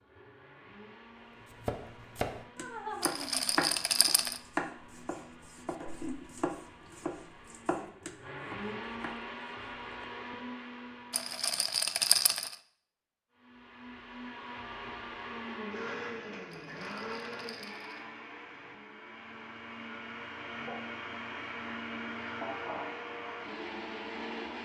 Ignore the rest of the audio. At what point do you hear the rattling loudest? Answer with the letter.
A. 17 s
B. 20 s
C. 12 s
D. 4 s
C.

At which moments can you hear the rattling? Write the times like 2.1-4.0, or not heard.
3.0-4.4, 11.1-12.6, 16.5-18.1.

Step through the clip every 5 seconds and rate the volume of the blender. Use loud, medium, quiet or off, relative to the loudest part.
quiet, medium, medium, loud, loud.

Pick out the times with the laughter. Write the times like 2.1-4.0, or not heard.
2.5-3.5.